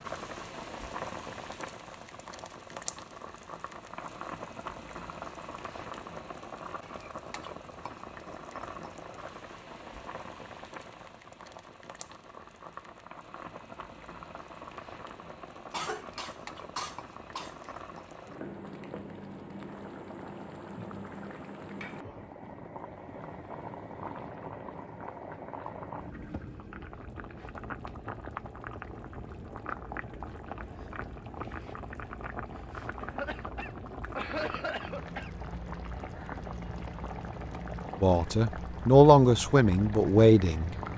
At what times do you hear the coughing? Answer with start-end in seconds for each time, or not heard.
15.7-17.8, 33.0-35.3.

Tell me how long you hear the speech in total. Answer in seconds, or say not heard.
3 s.